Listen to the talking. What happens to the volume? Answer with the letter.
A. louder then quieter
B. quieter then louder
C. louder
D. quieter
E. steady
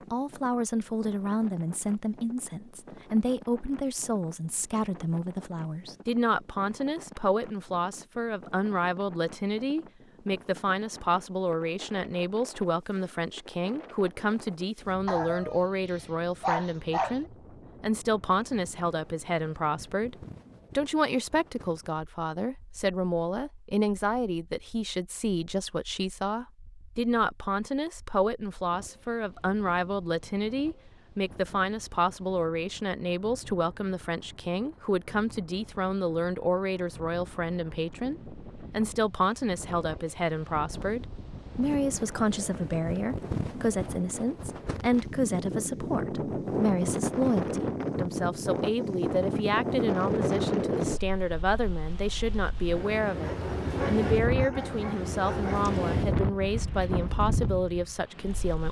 E.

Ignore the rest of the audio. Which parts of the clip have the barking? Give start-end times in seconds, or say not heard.
15.1-17.1, 53.2-55.8.